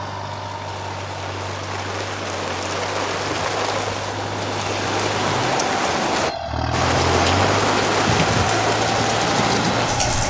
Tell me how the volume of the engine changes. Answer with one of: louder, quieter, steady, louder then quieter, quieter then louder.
louder.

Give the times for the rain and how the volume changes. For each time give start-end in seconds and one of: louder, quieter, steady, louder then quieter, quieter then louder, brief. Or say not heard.
0.0-10.2 louder.